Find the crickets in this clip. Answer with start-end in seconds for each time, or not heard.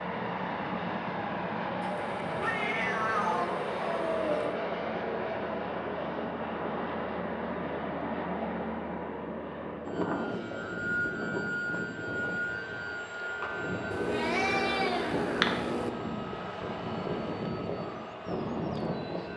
not heard.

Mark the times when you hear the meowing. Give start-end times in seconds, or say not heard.
1.8-4.5, 13.9-15.9.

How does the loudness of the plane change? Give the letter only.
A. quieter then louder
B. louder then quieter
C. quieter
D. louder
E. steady
E.